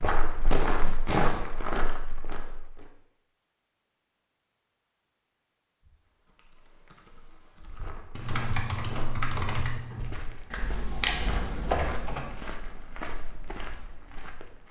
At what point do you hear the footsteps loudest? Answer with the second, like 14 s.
1 s.